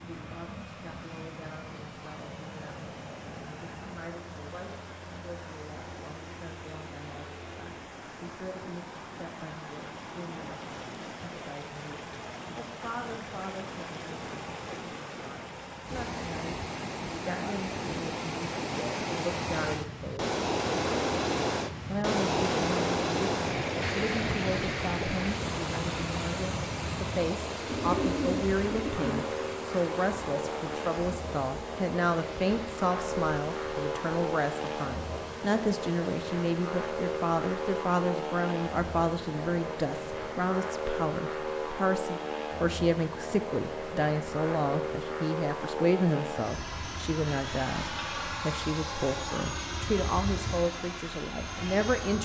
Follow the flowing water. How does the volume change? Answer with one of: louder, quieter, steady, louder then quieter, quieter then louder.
louder then quieter.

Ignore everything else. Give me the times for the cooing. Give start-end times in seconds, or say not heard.
27.6-29.2.